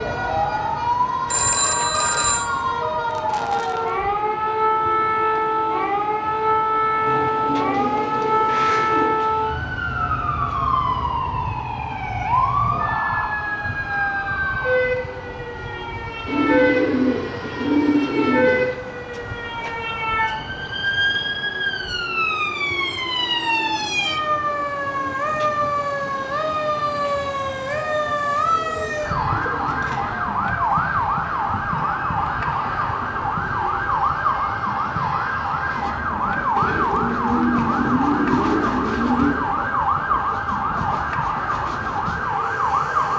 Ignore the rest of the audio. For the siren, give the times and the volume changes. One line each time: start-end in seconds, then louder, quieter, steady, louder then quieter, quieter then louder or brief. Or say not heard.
0.0-43.1 steady.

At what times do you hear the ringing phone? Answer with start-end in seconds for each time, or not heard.
1.3-2.5.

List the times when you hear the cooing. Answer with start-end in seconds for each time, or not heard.
7.0-9.1, 16.2-18.8, 28.4-30.3, 36.5-39.5.